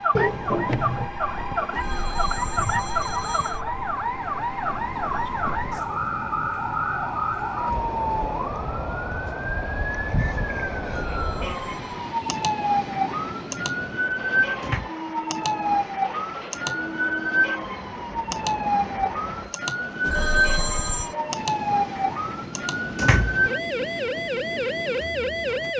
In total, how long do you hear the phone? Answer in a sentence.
You can hear the phone for 4 seconds altogether.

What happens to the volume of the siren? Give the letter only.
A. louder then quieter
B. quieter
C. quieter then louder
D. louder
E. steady
E.